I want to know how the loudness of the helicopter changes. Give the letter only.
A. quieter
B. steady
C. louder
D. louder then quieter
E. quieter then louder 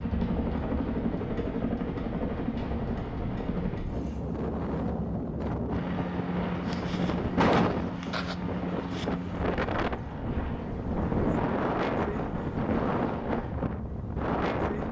A.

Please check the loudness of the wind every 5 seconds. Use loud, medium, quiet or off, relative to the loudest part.
medium, loud, loud.